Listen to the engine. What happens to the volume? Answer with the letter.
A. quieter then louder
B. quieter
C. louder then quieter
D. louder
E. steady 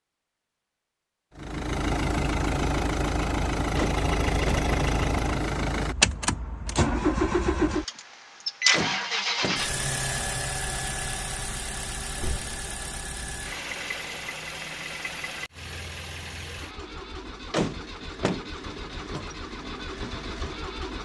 B.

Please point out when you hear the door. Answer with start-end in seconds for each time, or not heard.
3.8-4.7, 8.7-9.7, 17.5-18.4.